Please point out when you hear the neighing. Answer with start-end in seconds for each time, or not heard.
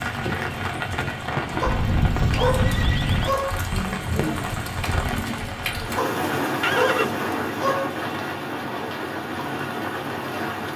1.6-3.4, 6.6-7.2.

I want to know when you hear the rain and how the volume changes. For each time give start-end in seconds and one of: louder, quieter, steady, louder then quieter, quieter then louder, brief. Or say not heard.
0.0-10.7 steady.